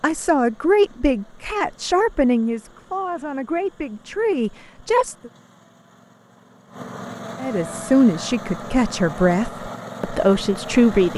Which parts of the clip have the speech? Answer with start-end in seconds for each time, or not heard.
0.0-5.3, 7.4-11.1.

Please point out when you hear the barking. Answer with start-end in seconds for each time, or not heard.
not heard.